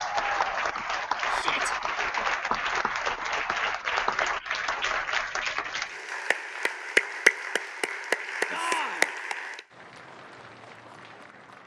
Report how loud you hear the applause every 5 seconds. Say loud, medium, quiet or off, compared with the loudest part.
loud, loud, quiet.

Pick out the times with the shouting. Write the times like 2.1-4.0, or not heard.
1.3-1.8, 8.5-9.1.